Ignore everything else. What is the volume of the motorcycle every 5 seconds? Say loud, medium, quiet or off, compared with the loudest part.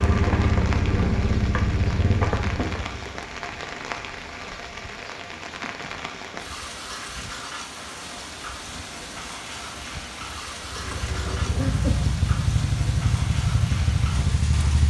loud, off, loud.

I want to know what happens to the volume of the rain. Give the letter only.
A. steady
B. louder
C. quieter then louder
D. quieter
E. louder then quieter
A.